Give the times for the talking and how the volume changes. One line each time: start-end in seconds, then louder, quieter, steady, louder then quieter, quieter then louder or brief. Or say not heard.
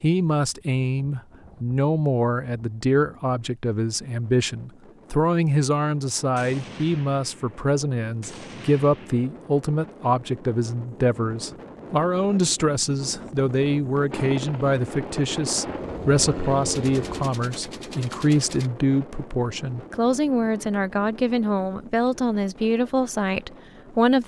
0.0-24.2 steady.